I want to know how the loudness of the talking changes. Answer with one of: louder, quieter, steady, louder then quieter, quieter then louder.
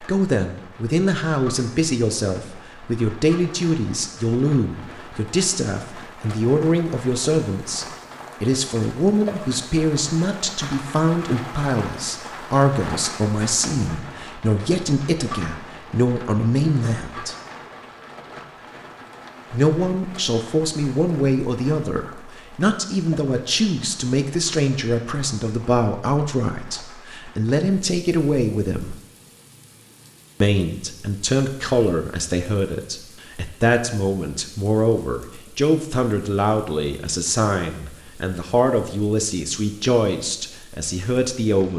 steady.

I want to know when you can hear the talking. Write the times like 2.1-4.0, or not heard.
0.0-17.4, 19.5-28.9, 30.4-41.7.